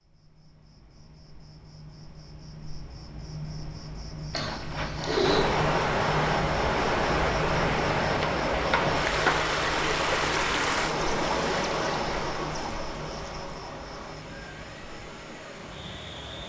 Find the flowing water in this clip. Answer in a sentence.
The flowing water can be heard from 5.2 to 16.4 s.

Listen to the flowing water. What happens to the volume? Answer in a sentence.
The volume of the flowing water goes down.